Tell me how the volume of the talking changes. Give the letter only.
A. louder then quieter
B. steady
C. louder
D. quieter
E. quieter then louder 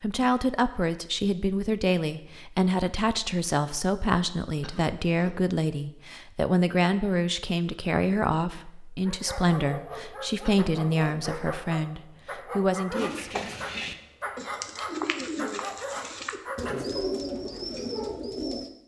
B.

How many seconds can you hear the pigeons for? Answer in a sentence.
The pigeons can be heard for 6 seconds in total.